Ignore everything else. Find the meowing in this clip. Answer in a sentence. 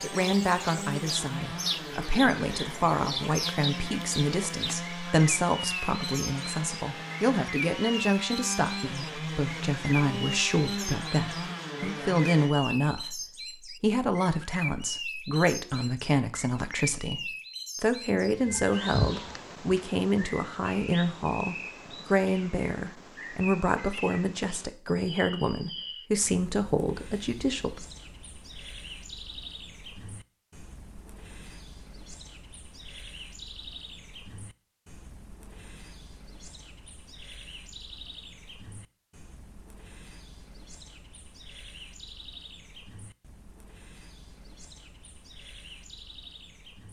You can hear the meowing from 18.3 to 19.8 s.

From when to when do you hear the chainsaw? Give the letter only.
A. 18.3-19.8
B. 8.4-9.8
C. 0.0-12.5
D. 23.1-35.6
C.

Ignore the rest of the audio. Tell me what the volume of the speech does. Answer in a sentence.
The volume of the speech stays about the same.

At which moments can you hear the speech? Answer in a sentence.
You can hear the speech from 0.0 to 27.8 s.